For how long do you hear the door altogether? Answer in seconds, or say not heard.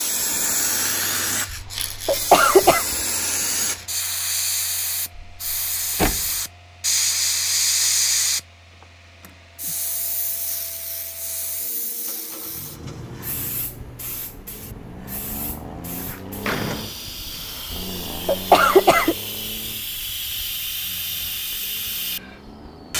3 s.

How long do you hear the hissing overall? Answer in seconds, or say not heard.
23 s.